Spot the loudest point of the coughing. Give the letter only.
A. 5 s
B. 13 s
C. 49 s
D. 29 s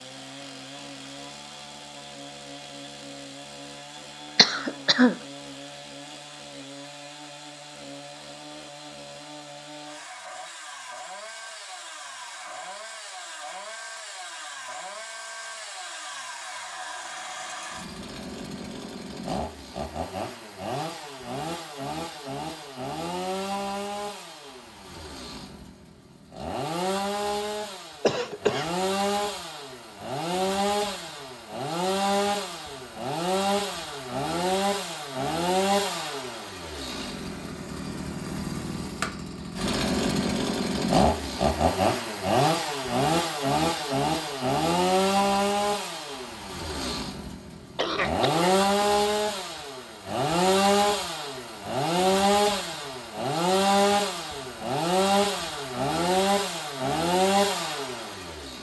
A.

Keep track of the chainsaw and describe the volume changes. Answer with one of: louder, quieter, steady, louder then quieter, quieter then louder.
louder.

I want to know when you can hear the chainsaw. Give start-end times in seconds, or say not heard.
0.0-58.5.